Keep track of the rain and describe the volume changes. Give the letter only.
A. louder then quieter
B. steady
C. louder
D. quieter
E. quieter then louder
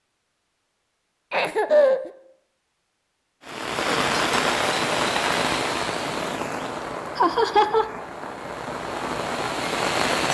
E.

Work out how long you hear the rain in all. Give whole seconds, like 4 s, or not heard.
7 s.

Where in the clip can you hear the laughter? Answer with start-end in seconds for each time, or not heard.
1.3-2.1, 7.2-7.8.